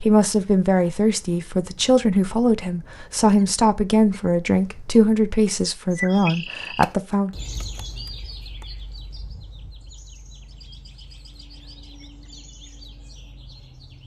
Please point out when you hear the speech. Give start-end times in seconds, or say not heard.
0.0-7.3.